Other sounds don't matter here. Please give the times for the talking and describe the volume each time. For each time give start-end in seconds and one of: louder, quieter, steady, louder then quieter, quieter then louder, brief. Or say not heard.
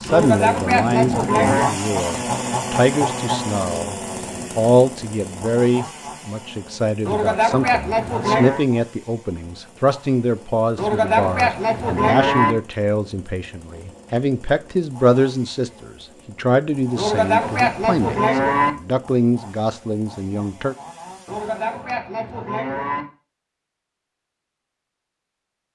0.0-20.8 steady.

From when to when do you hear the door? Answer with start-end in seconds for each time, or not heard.
not heard.